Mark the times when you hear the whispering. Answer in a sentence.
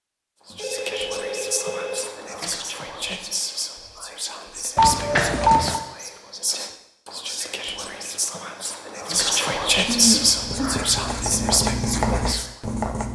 The whispering can be heard from 0.5 to 12.5 s.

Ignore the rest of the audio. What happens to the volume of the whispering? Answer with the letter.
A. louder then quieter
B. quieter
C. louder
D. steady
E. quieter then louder
C.